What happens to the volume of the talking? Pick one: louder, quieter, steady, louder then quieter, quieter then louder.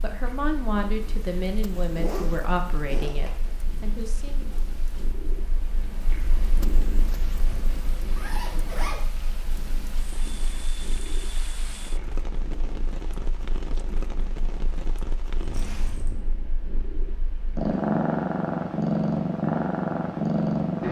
quieter.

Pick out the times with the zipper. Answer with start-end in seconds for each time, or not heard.
1.8-3.5, 7.1-8.9, 15.4-16.1.